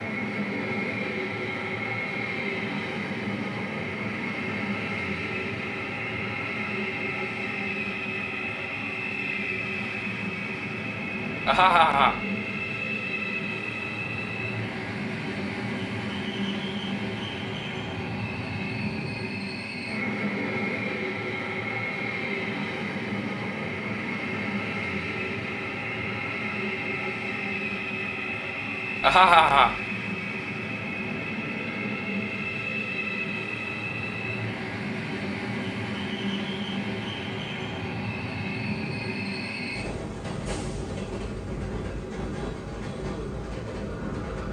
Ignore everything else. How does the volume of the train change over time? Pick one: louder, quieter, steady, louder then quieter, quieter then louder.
steady.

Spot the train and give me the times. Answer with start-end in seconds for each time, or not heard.
0.0-44.4.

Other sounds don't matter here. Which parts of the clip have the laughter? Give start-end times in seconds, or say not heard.
11.4-12.2, 29.0-29.7.